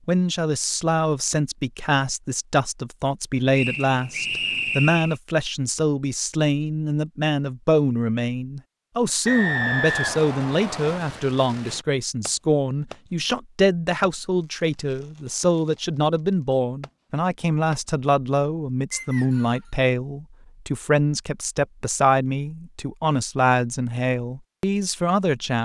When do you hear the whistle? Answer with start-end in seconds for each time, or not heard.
3.5-5.2, 9.2-11.0, 18.9-19.7.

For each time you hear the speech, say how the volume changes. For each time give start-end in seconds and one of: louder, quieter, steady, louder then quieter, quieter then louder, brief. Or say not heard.
0.1-25.5 steady.